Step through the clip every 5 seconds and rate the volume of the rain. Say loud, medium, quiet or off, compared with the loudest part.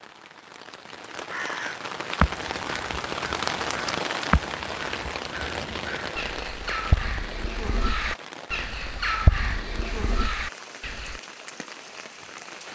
loud, medium, medium.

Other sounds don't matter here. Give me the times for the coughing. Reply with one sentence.
You can't hear the coughing here.